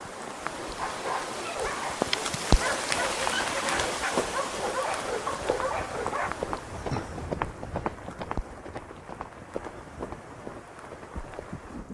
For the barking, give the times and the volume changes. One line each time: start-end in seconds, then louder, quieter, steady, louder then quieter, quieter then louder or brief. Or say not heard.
0.8-6.3 steady.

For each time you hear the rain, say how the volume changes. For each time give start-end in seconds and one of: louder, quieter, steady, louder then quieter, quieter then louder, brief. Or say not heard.
0.0-11.8 quieter.